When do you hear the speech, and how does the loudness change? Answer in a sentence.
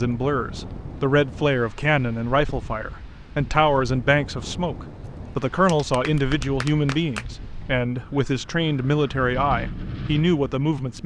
The speech can be heard from 0.0 to 11.0 s, at a steady volume.